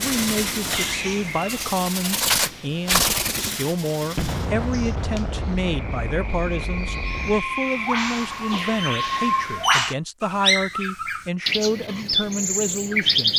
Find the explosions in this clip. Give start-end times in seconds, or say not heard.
4.2-7.5.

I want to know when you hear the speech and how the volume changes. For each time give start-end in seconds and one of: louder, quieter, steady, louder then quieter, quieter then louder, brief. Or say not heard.
0.0-13.3 steady.